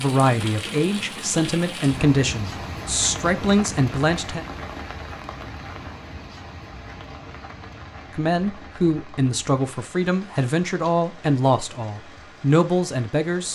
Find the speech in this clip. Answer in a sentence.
The speech can be heard from 0.0 to 4.5 s and from 8.2 to 13.5 s.